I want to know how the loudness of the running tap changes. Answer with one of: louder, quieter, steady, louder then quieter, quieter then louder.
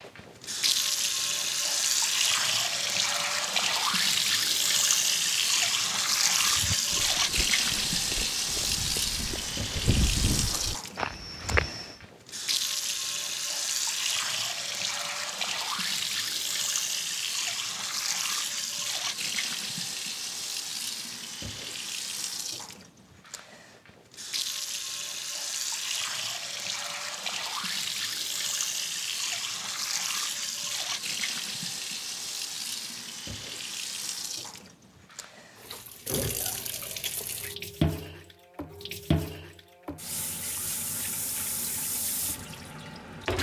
quieter.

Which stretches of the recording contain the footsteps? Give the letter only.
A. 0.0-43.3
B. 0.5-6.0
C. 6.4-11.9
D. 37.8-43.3
C.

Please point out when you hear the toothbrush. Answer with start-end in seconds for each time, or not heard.
not heard.